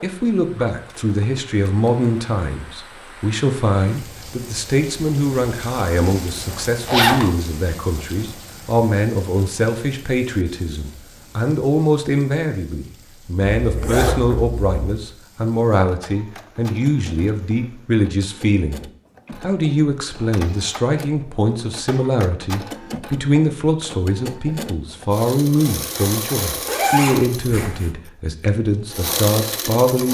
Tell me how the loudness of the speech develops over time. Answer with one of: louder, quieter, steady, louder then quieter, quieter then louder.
steady.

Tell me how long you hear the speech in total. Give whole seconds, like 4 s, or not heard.
30 s.